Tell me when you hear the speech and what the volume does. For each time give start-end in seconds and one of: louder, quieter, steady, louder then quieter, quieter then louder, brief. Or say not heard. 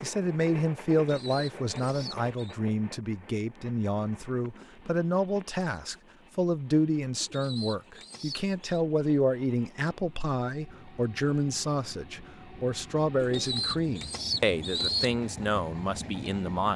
0.0-16.7 steady.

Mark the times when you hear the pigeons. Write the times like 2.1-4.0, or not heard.
0.9-2.5, 7.2-8.8, 13.2-15.1.